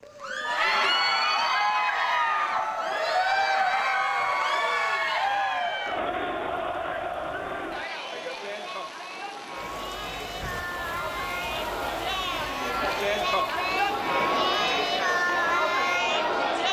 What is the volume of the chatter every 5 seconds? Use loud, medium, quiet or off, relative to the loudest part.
loud, medium, loud, loud.